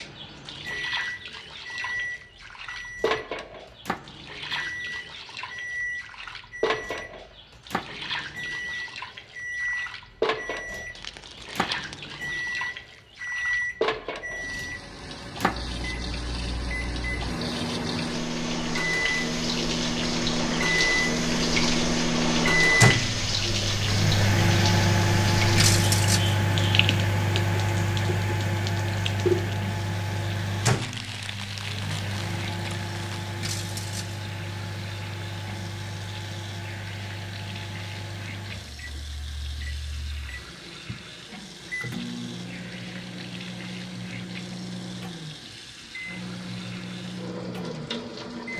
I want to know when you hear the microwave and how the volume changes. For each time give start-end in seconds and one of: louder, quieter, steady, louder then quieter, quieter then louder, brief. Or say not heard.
0.0-48.5 louder then quieter.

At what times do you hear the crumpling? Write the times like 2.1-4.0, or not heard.
10.9-12.0, 30.6-33.2.